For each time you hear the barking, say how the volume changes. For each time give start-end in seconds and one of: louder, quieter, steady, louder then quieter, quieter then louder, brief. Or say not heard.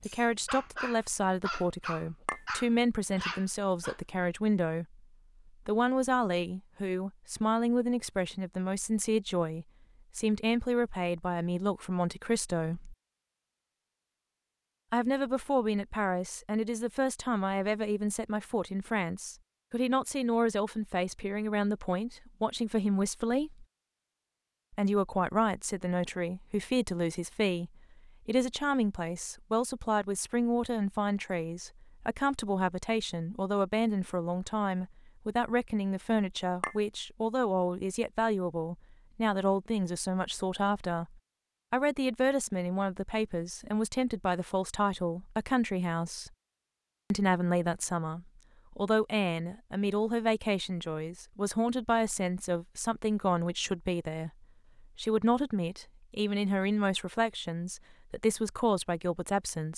0.0-4.0 steady.